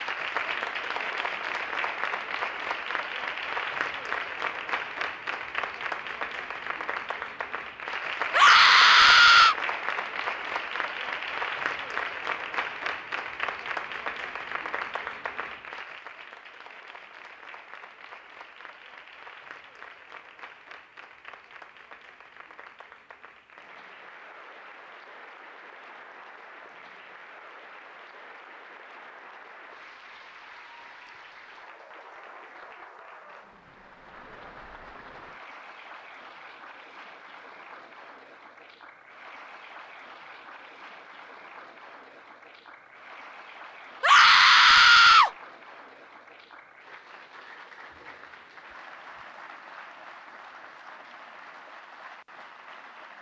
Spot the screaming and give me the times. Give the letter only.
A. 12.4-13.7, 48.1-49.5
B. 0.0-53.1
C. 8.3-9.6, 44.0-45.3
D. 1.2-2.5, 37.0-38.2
C.